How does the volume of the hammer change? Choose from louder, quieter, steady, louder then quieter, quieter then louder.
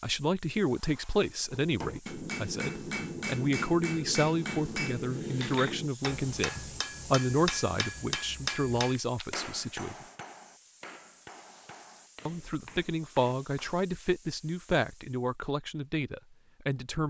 quieter.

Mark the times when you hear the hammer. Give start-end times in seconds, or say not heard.
1.6-13.8.